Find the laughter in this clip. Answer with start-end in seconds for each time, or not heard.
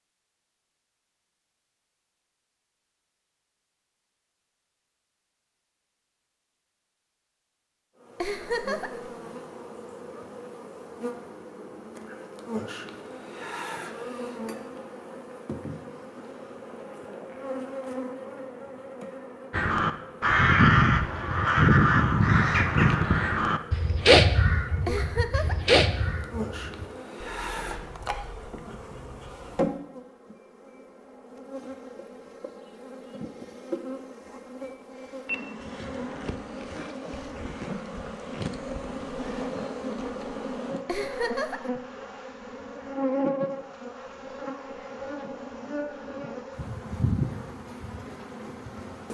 8.2-9.1, 24.9-25.8, 40.9-41.8.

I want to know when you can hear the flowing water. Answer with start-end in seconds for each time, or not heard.
not heard.